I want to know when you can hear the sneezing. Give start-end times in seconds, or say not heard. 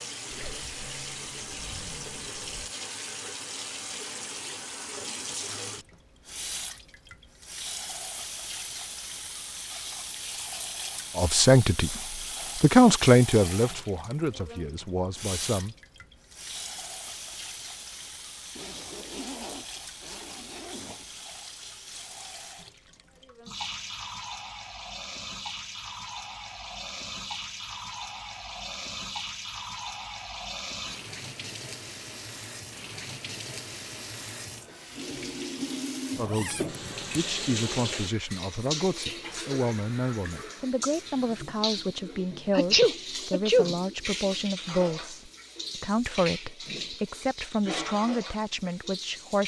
42.5-43.8.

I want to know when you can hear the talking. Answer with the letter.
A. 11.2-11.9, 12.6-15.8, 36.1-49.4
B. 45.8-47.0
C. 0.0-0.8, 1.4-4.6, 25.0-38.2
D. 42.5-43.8
A.